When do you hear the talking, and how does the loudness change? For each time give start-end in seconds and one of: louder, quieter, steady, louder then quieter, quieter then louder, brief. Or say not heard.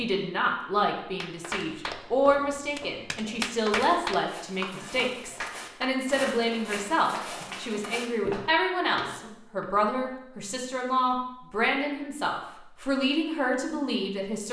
0.0-14.4 steady.